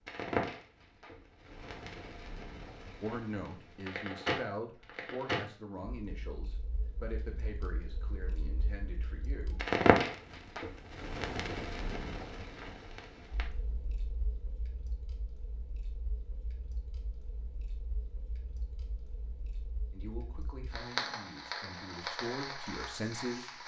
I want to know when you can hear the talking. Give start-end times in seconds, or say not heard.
3.0-9.7, 19.9-23.6.